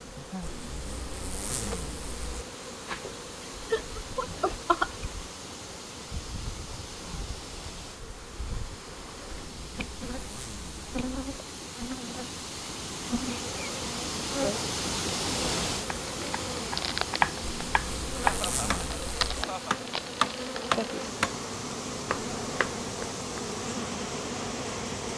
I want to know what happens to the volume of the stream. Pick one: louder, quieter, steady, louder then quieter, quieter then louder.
louder then quieter.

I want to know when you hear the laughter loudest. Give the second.
5 s.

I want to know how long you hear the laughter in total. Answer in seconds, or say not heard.
3 s.